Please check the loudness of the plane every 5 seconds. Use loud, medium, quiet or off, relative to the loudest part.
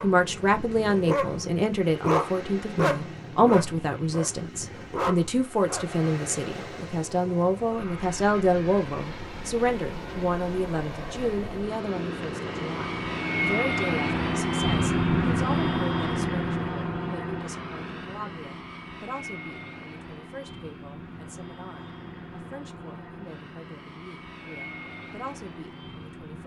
quiet, quiet, loud, loud, quiet, quiet.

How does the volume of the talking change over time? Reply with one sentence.
The volume of the talking goes down.